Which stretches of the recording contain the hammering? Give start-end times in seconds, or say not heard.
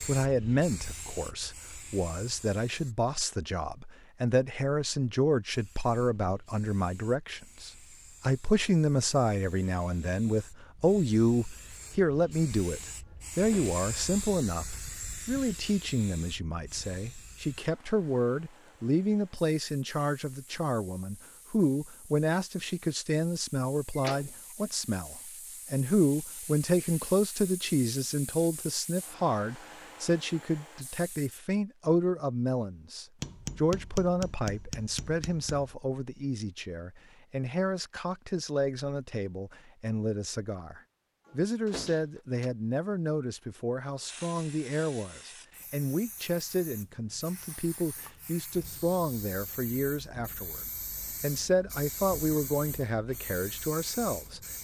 33.2-35.8.